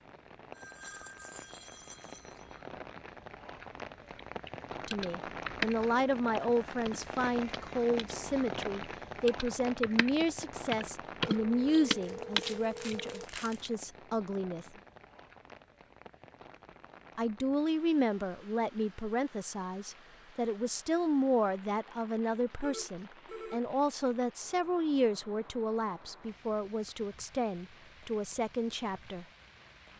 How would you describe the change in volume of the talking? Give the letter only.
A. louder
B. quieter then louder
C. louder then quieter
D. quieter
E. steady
E.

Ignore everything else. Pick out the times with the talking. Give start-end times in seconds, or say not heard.
4.8-14.7, 17.1-29.2.